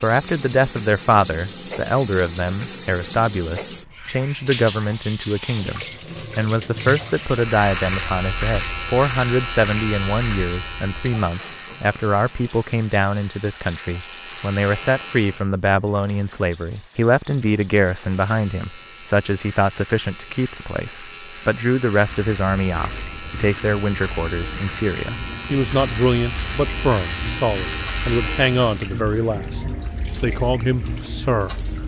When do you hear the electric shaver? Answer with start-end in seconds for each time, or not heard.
7.2-15.5, 18.1-28.9.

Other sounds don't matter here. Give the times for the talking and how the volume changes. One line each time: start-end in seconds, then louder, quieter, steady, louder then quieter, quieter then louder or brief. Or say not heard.
0.0-31.6 steady.